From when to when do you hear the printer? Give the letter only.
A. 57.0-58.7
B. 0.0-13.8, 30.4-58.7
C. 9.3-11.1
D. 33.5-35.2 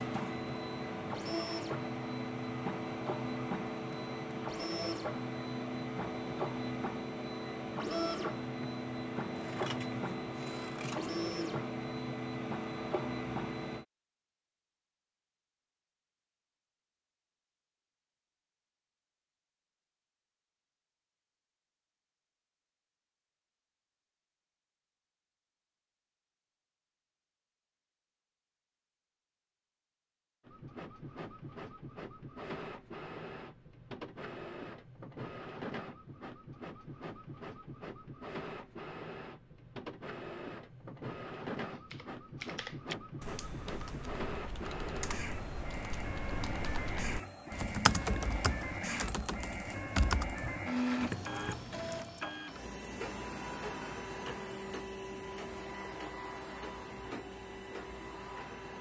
B.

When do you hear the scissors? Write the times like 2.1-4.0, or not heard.
9.3-11.1.